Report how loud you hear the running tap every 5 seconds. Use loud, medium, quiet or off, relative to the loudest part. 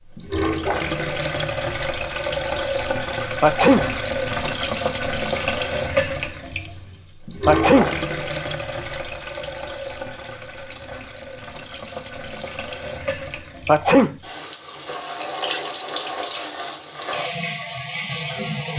loud, loud, medium, loud.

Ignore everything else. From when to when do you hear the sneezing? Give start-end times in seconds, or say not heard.
3.4-3.9, 7.5-7.9, 13.7-14.2.